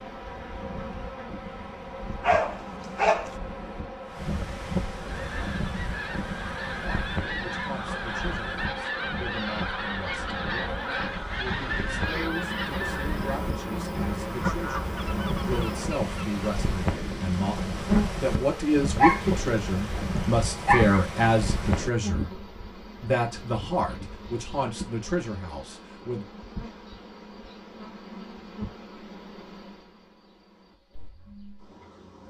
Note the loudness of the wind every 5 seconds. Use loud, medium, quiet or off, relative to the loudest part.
medium, medium, medium, loud, loud, off, off.